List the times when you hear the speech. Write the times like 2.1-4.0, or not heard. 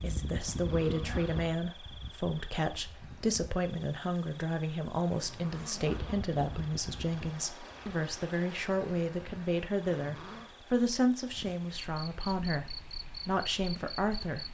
0.0-14.5.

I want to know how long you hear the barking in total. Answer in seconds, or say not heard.
not heard.